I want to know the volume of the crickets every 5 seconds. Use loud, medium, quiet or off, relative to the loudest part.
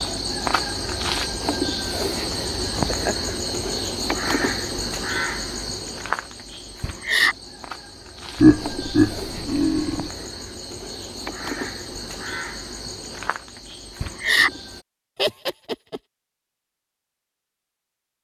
loud, loud, loud, off.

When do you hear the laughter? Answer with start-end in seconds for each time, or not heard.
2.9-3.3, 8.3-10.1, 15.2-16.0.